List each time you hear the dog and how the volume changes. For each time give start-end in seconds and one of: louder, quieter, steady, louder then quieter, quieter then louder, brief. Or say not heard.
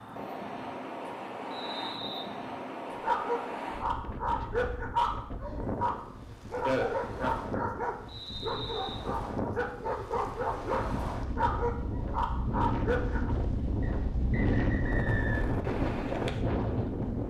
3.0-13.3 steady.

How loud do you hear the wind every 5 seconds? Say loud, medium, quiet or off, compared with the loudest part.
medium, medium, loud, loud.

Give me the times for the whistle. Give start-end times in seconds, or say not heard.
1.5-2.2, 8.1-9.1, 13.8-15.6.